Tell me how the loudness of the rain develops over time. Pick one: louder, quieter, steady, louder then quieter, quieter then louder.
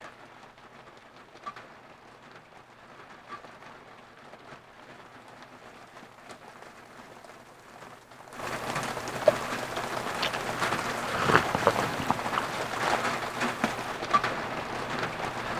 louder.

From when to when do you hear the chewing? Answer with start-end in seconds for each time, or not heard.
10.2-12.5.